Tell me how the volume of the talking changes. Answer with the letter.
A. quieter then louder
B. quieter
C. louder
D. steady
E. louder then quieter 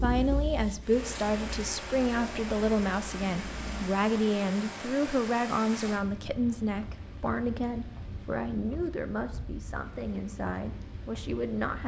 B.